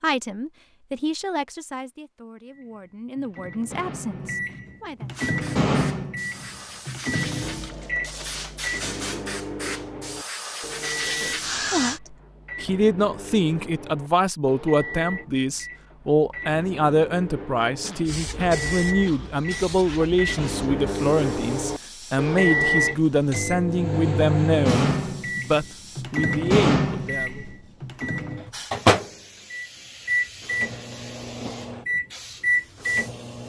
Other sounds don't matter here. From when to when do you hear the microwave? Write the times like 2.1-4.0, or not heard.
2.5-33.4.